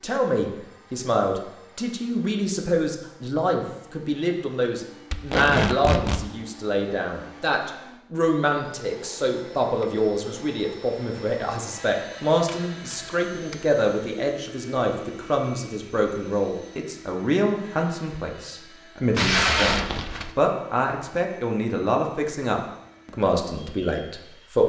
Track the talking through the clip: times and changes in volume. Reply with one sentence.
The talking can be heard from 0.0 to 24.6 s, at a steady volume.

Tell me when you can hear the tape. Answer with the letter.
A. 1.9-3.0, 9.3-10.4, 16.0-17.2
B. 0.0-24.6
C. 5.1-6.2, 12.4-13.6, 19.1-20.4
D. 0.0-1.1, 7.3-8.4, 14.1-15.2
C.